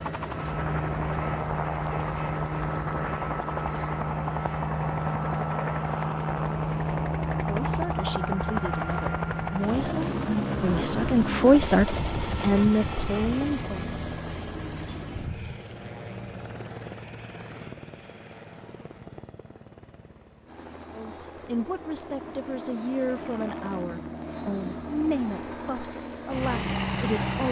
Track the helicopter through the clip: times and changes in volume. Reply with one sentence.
The helicopter can be heard from 0.0 to 27.4 s, getting quieter then louder.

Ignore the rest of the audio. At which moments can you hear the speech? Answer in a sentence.
The speech can be heard from 7.5 to 13.8 s and from 20.9 to 27.4 s.